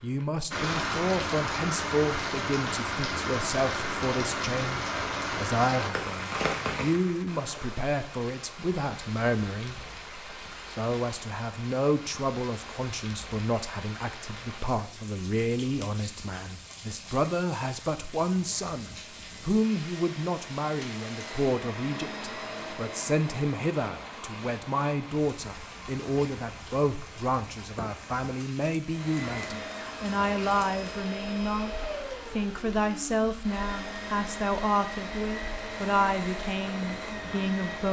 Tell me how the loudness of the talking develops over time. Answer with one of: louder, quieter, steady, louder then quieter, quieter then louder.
steady.